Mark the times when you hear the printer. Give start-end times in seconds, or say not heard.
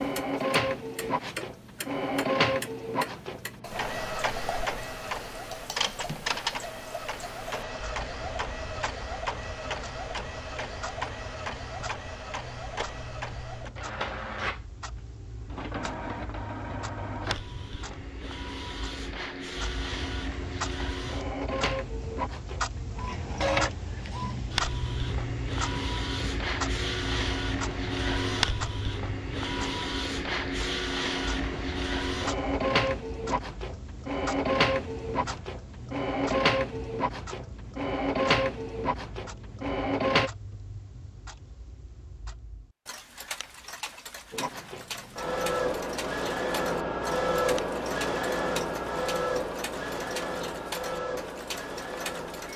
0.0-40.3, 44.3-52.5.